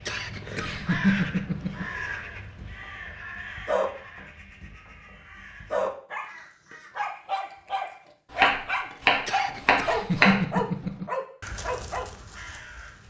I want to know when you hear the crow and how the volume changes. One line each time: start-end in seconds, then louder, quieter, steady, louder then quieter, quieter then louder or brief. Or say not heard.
0.0-6.9 quieter
11.4-13.0 brief.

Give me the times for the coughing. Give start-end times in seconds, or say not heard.
0.1-1.9, 9.2-11.1.